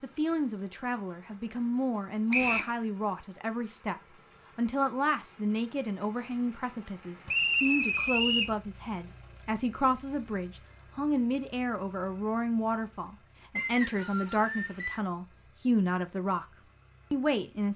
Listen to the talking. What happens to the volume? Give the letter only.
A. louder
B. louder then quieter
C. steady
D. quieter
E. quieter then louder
C.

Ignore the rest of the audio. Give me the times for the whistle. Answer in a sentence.
You can hear the whistle from 2.3 to 2.8 s, from 7.2 to 8.6 s and from 13.6 to 15.0 s.